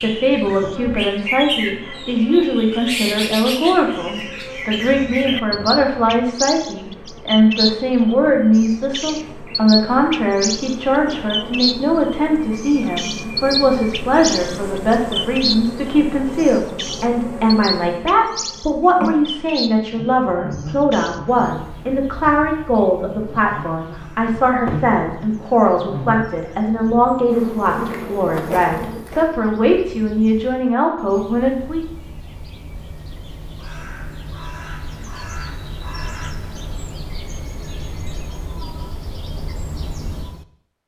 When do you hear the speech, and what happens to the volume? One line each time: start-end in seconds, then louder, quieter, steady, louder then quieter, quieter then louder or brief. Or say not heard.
0.0-31.9 steady.